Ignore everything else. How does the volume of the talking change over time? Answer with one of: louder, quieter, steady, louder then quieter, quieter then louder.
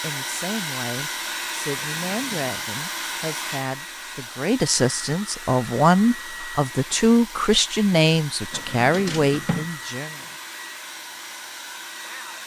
louder.